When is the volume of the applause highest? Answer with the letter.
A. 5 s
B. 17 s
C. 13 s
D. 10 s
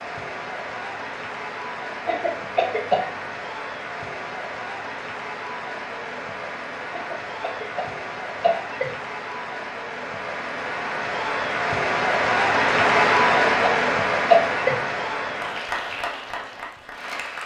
C.